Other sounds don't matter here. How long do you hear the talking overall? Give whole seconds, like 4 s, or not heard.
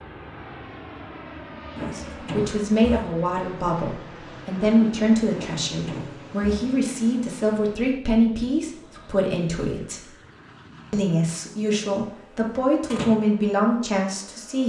12 s.